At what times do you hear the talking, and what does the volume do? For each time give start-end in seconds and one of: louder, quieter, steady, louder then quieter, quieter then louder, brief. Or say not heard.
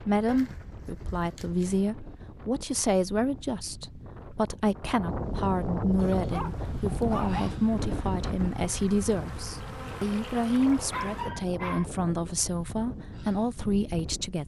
0.1-14.4 steady.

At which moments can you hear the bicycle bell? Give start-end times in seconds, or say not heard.
not heard.